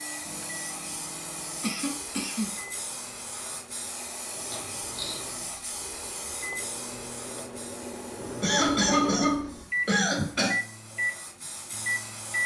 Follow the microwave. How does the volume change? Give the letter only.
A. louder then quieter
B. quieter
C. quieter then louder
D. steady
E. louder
E.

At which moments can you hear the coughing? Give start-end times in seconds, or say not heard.
1.6-2.5, 4.5-5.2, 8.4-10.6.